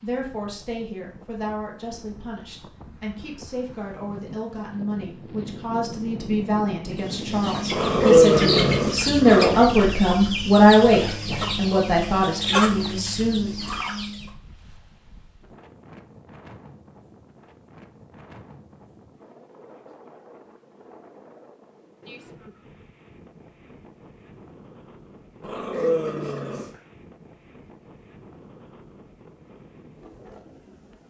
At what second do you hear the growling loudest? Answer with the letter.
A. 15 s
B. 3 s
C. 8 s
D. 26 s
C.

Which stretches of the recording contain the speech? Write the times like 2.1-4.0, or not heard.
0.0-13.5.